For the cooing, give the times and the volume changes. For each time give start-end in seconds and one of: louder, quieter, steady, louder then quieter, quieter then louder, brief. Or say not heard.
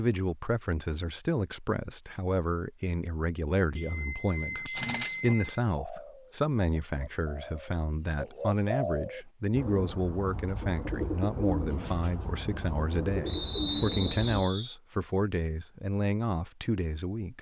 4.8-14.4 louder.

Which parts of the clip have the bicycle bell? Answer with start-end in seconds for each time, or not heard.
3.8-5.6.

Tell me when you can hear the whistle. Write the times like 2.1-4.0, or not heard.
13.2-14.8.